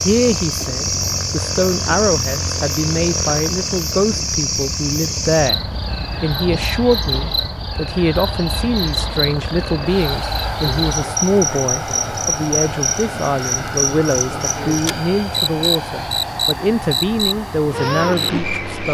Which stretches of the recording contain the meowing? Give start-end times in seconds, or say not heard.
not heard.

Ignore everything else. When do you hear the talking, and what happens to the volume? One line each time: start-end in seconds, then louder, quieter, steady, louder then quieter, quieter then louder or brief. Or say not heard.
0.0-18.8 steady.